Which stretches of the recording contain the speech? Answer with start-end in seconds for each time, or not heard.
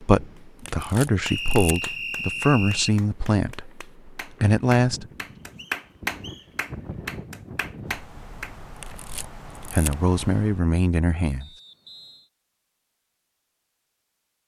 0.0-5.0, 9.5-11.4.